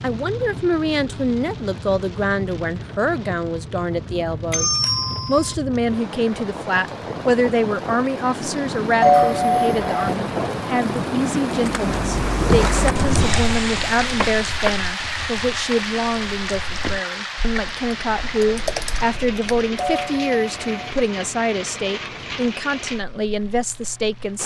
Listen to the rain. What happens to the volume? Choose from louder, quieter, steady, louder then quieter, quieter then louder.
louder then quieter.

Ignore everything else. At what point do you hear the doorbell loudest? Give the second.
9 s.